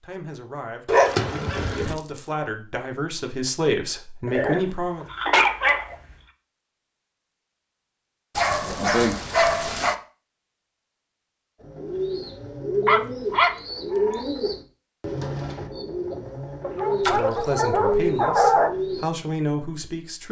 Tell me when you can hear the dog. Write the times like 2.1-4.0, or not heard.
0.8-1.9, 4.2-6.0, 8.3-9.9, 12.8-14.2, 16.6-18.7.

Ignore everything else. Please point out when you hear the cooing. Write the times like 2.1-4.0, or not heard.
11.6-19.1.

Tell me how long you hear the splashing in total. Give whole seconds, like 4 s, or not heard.
2 s.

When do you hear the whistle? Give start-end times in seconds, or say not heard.
not heard.